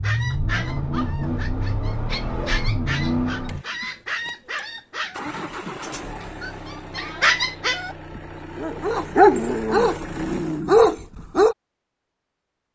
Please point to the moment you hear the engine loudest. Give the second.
3 s.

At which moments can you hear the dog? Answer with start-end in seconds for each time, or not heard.
0.0-11.6.